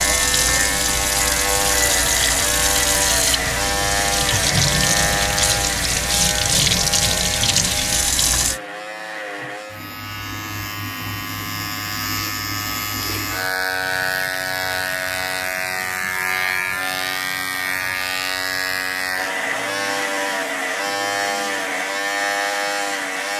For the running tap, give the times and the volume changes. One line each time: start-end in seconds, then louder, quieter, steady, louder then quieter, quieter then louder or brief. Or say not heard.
0.0-8.6 steady.